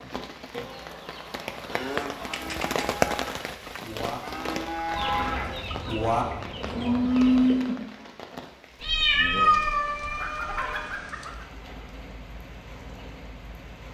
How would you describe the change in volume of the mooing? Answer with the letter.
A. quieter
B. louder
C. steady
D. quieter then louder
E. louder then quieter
B.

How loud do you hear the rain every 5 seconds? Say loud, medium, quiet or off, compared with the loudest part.
loud, medium, quiet.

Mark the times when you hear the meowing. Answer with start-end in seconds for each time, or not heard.
1.7-2.9, 8.8-10.9.